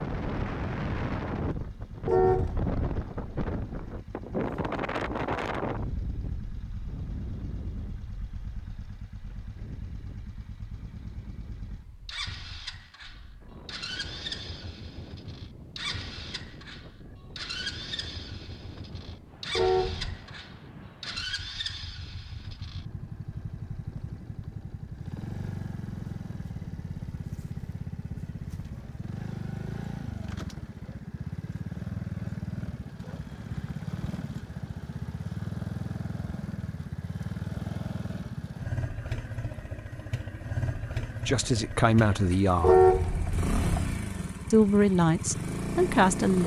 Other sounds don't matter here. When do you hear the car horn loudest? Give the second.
43 s.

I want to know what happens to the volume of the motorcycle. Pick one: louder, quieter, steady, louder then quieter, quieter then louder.
louder.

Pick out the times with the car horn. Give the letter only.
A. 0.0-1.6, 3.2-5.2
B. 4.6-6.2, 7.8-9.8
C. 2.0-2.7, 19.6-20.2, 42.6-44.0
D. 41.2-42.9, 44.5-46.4
C.